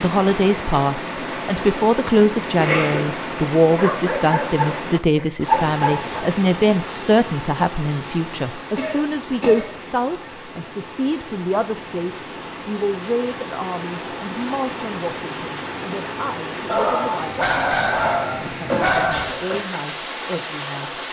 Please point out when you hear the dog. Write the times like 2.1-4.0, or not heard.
3.8-6.2, 16.6-19.4.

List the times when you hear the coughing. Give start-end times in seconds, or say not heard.
2.5-3.1, 8.8-9.7, 18.6-19.6.